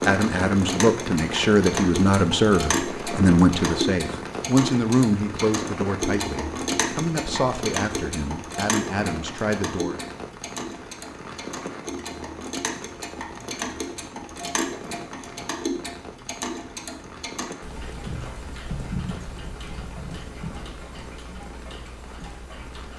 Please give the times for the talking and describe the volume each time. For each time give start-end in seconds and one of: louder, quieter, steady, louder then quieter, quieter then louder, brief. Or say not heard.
0.0-10.0 quieter.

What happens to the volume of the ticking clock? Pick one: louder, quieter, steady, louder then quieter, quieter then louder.
quieter.